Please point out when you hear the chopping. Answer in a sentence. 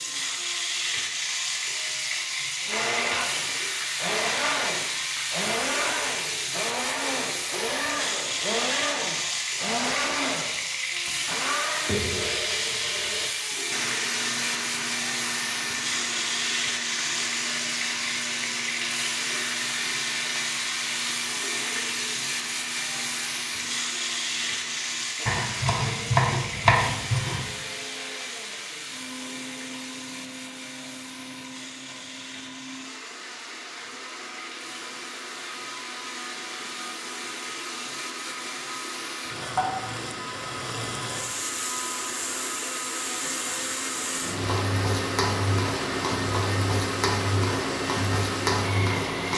You can hear the chopping from 25.2 to 27.5 s.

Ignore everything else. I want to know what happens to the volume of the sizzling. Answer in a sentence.
The loudness of the sizzling goes down, then up.